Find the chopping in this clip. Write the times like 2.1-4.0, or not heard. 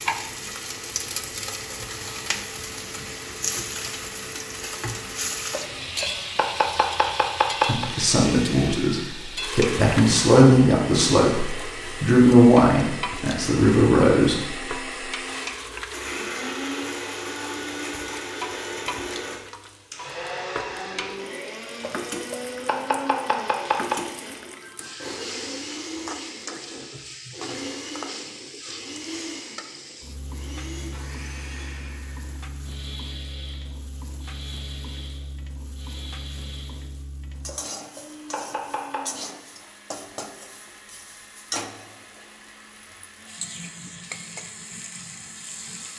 5.5-7.8, 21.8-24.1, 37.5-39.0.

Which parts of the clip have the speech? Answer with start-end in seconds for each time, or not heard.
7.7-14.5.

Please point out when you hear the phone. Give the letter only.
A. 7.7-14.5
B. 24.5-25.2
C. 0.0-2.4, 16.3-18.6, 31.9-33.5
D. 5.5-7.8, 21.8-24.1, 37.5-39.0
B.